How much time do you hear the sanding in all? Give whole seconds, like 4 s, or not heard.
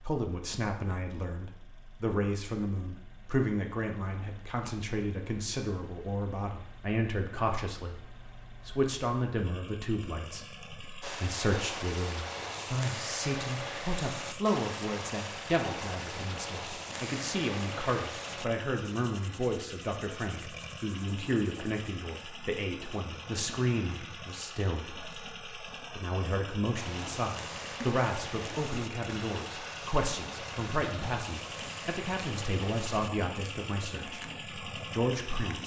17 s.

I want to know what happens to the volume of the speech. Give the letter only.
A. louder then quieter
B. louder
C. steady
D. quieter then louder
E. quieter
C.